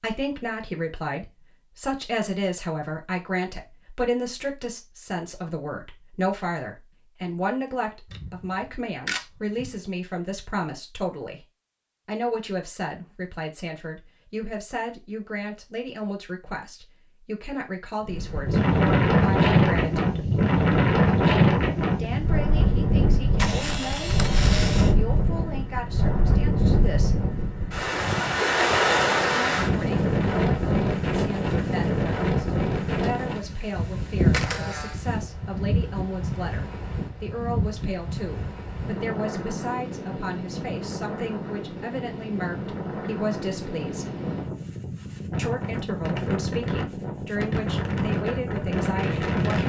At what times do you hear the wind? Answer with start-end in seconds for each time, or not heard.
18.1-49.6.